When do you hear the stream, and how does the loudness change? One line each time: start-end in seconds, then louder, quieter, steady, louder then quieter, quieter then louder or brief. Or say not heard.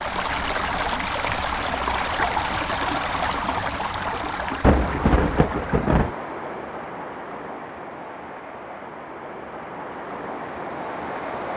0.0-11.5 quieter.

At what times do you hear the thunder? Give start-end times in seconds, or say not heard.
4.6-6.1.